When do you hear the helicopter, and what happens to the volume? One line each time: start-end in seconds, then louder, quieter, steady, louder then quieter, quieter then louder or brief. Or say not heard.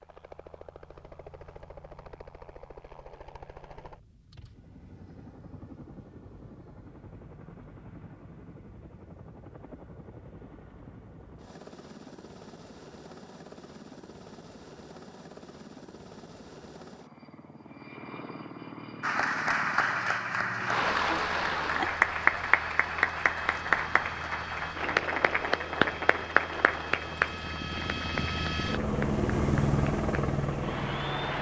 0.0-31.3 louder.